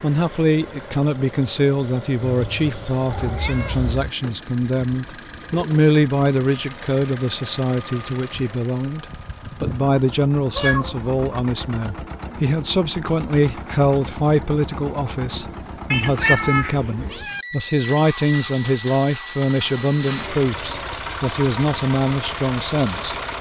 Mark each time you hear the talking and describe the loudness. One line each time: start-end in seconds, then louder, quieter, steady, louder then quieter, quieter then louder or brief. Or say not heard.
0.0-23.1 steady.